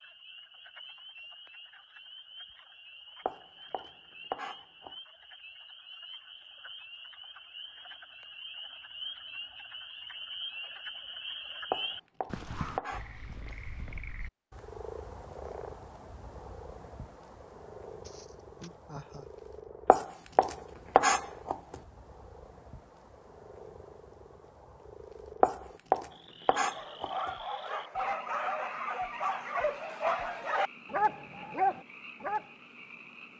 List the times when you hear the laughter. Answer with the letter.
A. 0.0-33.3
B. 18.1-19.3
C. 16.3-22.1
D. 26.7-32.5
B.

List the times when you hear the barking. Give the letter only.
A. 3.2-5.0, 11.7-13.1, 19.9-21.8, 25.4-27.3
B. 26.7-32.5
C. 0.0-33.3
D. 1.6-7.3
B.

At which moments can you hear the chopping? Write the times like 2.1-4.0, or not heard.
3.2-5.0, 11.7-13.1, 19.9-21.8, 25.4-27.3.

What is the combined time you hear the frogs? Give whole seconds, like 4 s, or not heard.
33 s.